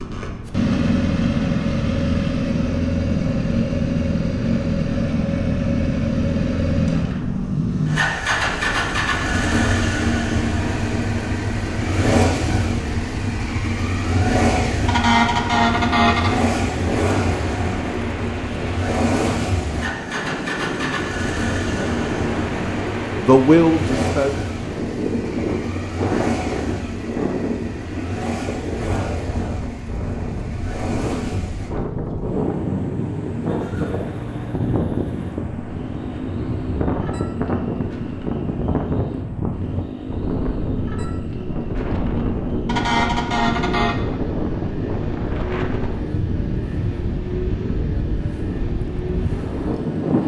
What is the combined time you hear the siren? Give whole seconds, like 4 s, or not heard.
not heard.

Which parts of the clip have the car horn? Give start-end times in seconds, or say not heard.
14.8-16.4, 42.6-44.0.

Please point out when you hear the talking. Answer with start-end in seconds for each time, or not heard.
23.1-24.4.